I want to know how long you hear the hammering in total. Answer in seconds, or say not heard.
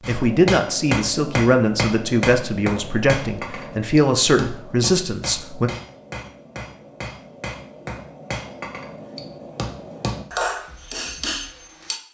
12 s.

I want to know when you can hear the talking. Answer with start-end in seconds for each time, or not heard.
0.1-5.7.